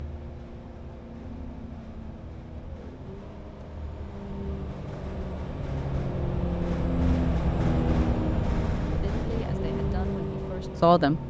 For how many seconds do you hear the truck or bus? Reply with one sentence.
You can hear the truck or bus for 11 seconds altogether.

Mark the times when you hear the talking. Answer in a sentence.
The talking can be heard from 9.0 to 11.2 s.